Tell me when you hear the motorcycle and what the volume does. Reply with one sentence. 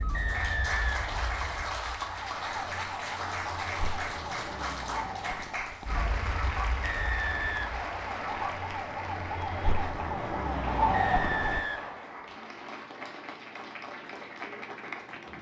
You can't hear the motorcycle here.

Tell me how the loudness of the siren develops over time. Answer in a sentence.
The volume of the siren goes up.